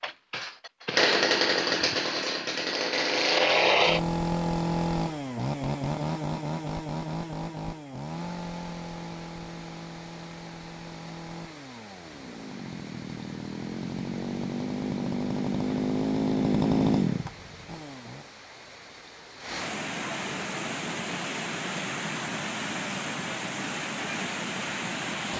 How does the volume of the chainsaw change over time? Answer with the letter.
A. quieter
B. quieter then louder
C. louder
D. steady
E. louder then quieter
B.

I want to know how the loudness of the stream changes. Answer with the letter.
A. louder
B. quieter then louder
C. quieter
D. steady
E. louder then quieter
A.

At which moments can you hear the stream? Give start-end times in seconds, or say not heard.
8.0-25.3.